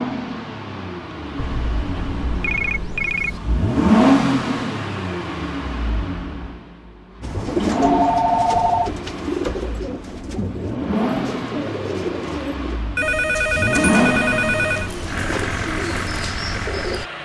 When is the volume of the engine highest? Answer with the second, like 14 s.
4 s.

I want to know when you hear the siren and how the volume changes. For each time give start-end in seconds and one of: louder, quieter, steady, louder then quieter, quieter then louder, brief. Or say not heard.
not heard.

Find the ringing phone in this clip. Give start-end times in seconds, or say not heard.
1.4-3.4, 7.6-8.9, 12.9-14.9.